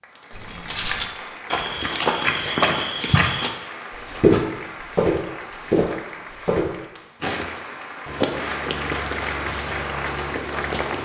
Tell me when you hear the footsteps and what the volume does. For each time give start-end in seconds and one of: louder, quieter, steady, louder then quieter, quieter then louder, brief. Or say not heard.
0.3-11.0 quieter.